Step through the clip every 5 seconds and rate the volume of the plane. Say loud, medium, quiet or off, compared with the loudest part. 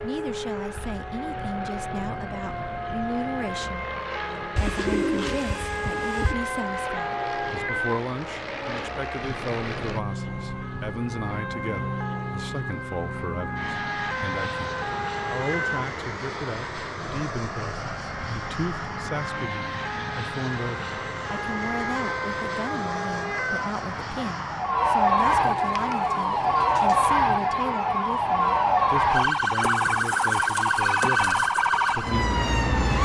loud, loud, loud, loud, loud, medium, medium.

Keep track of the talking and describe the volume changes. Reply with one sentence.
The volume of the talking stays about the same.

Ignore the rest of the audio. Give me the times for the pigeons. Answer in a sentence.
You can hear the pigeons from 4.5 to 6.3 s and from 25.3 to 27.1 s.